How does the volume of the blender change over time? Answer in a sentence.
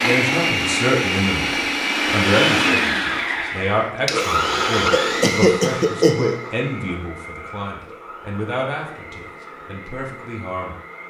The volume of the blender goes down.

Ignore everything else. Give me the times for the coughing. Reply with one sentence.
The coughing can be heard from 4.9 to 6.3 s.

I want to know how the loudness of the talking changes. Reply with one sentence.
The volume of the talking goes down.